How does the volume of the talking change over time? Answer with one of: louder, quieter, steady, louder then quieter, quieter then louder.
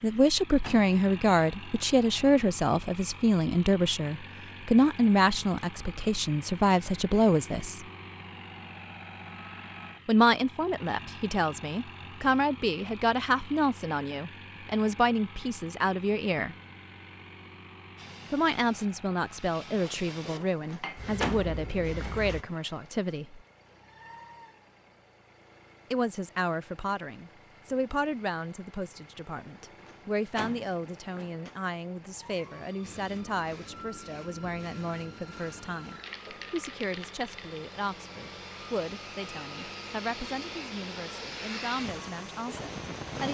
quieter.